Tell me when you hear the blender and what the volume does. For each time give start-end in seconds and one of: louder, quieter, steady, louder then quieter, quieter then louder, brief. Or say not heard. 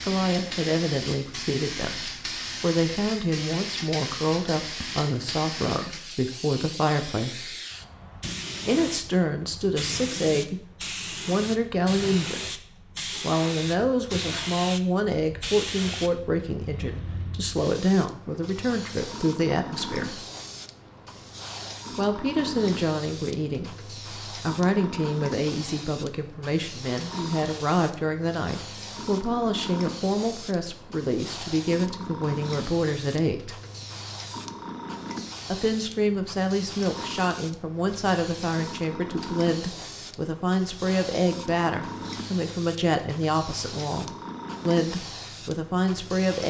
not heard.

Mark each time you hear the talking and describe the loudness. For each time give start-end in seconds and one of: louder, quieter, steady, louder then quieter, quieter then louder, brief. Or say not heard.
0.0-7.5 steady
8.7-20.2 steady
21.9-33.6 steady
35.5-46.4 steady.